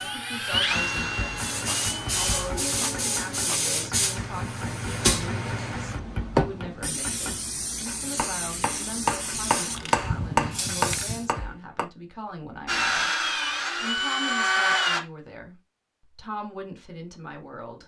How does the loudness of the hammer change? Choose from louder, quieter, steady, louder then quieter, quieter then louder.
louder.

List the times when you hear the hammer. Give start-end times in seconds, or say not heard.
0.5-11.8.